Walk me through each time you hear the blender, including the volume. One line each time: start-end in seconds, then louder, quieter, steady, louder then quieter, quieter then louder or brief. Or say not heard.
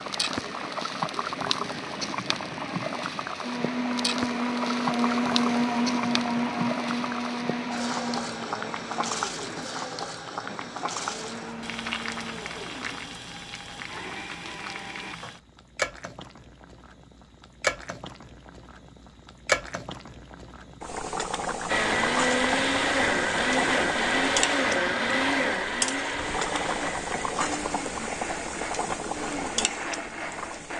3.4-15.2 quieter
21.6-30.7 quieter.